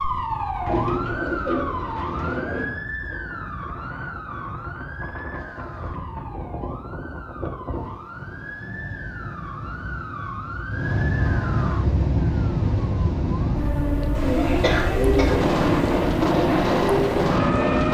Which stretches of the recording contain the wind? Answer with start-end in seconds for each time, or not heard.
0.0-17.9.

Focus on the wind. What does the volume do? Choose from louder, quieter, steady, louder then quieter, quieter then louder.
louder.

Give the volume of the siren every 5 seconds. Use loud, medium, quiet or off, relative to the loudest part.
medium, quiet, medium, loud.